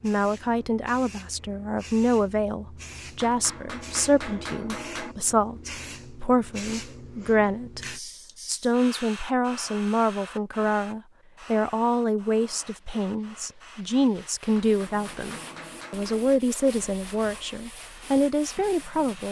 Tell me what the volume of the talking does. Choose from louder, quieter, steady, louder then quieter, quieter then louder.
steady.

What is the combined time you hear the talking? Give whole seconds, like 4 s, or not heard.
19 s.